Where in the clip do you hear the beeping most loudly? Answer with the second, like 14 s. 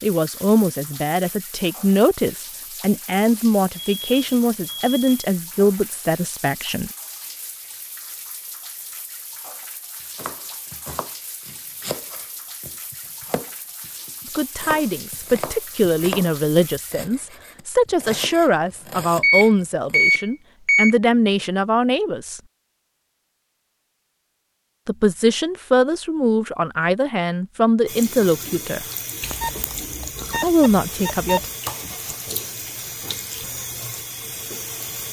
20 s.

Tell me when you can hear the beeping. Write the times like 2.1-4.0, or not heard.
3.8-5.3, 19.2-20.9, 29.2-31.4.